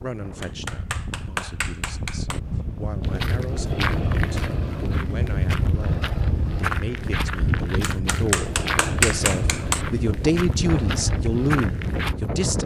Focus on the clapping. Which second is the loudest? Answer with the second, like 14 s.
9 s.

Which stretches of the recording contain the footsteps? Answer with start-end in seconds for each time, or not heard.
3.0-12.2.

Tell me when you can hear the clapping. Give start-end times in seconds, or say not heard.
0.4-2.4, 7.9-9.8.